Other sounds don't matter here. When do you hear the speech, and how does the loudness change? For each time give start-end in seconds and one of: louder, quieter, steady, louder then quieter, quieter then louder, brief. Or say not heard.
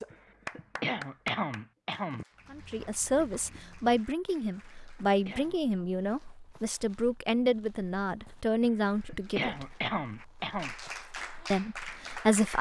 2.5-9.7 steady
11.5-12.5 brief.